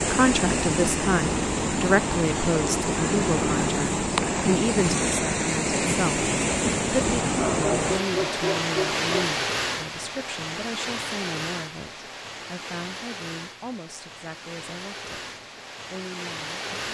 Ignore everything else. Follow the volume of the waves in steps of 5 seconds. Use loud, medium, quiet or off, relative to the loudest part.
loud, loud, medium, medium.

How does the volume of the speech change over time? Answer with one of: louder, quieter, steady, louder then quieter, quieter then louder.
quieter.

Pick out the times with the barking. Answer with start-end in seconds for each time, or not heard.
7.3-9.3.